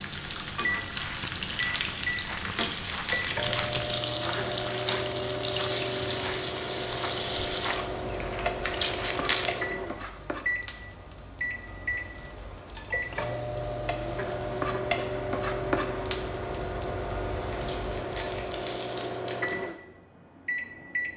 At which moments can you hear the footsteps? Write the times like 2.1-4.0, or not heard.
0.9-9.2.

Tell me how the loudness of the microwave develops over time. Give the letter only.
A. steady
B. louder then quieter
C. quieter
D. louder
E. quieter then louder
A.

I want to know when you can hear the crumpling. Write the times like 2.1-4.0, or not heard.
2.4-4.0, 8.6-9.6, 17.5-19.6.